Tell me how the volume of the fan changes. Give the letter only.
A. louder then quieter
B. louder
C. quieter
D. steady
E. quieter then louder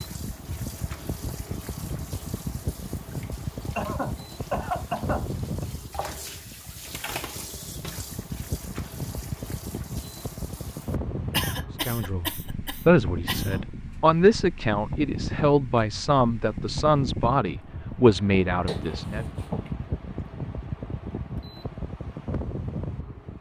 D.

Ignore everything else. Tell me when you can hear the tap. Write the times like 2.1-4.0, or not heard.
0.0-11.0.